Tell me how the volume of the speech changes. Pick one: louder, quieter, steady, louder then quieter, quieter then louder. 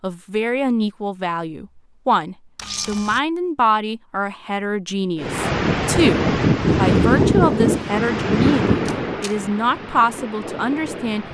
steady.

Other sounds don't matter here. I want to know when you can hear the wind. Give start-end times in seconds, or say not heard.
5.2-11.3.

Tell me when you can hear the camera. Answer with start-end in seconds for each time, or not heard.
2.5-3.2, 8.8-9.3.